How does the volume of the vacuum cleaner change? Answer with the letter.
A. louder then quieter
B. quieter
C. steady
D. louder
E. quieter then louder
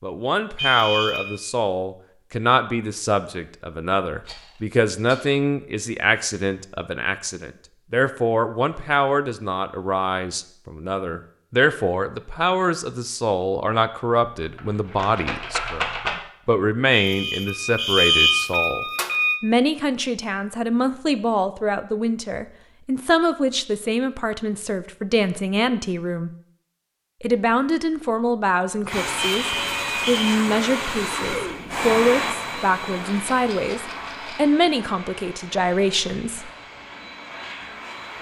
B.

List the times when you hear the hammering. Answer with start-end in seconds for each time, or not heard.
not heard.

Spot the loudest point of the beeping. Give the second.
18 s.